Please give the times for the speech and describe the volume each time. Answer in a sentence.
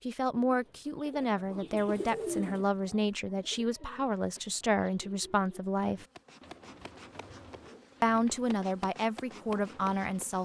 The speech can be heard from 0.1 to 6.0 s, at a steady volume; and briefly from 8.0 to 10.3 s.